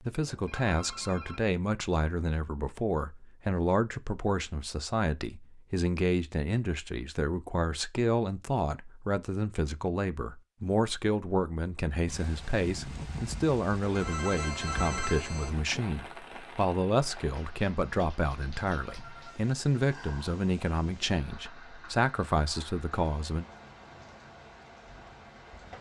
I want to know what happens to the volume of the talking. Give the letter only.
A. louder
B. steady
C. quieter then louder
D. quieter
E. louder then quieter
B.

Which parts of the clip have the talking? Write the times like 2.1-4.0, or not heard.
0.0-23.4.